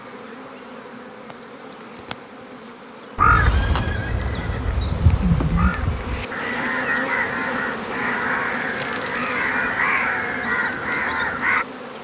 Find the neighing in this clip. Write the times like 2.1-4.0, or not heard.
3.5-5.2.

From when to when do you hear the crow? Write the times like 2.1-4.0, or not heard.
3.1-11.7.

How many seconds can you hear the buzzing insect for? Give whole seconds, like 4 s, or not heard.
12 s.